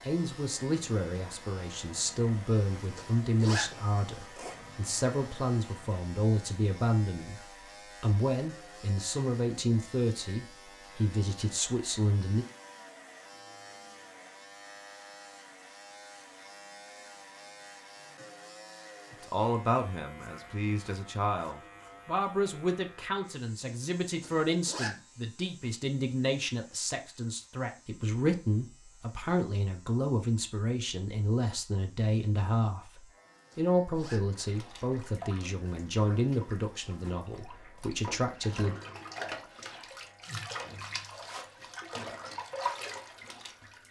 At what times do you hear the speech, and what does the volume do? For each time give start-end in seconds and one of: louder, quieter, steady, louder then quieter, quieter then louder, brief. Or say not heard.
0.0-12.4 steady
19.2-38.8 steady.